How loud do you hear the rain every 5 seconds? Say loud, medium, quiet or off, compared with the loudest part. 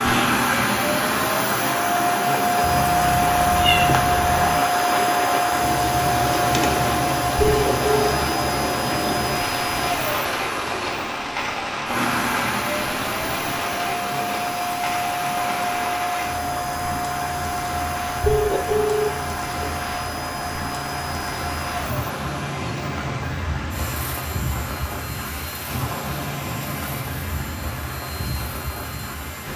loud, loud, loud, medium, medium, medium.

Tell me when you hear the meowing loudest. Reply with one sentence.
The loudest moment of the meowing is at 4 seconds.